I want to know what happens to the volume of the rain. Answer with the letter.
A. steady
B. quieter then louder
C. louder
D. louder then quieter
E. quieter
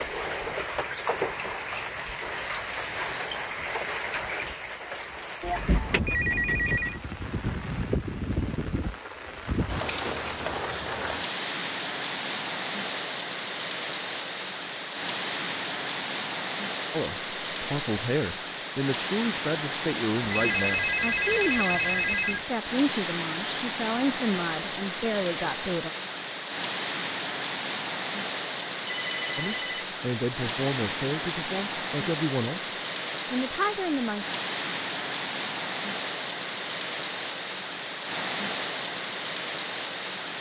A.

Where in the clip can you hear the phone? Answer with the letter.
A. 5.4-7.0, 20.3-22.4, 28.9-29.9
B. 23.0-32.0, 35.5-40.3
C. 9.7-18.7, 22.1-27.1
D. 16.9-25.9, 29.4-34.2
A.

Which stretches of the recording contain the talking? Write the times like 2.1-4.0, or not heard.
16.9-25.9, 29.4-34.2.